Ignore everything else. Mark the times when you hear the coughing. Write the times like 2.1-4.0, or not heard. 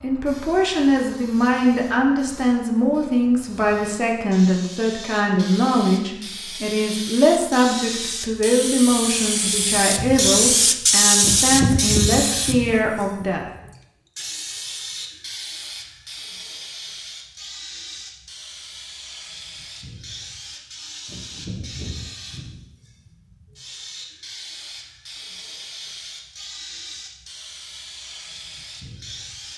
not heard.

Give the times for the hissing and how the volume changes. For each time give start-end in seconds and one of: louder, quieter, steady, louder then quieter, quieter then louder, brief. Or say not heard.
0.0-29.5 louder then quieter.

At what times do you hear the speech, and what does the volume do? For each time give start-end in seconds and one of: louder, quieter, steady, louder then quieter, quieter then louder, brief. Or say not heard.
0.0-13.4 steady.